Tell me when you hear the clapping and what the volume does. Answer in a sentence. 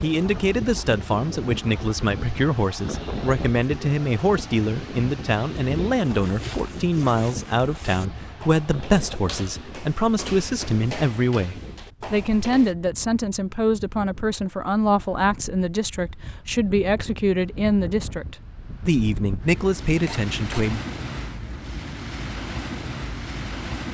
The clapping can't be heard in this clip.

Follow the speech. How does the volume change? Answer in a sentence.
The volume of the speech stays about the same.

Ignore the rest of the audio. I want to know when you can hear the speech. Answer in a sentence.
The speech can be heard from 0.0 to 20.9 s.